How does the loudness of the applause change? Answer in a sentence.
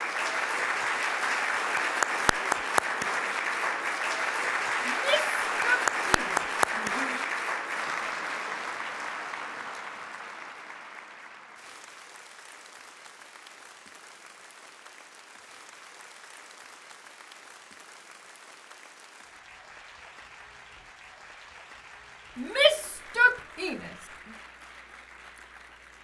The volume of the applause goes down.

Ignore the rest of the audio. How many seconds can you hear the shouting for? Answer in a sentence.
The shouting can be heard for 4 seconds in total.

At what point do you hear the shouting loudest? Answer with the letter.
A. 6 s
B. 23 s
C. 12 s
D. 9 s
B.